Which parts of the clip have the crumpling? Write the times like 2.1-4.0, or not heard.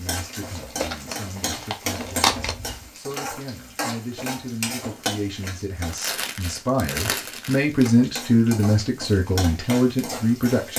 0.6-2.5, 5.9-7.9.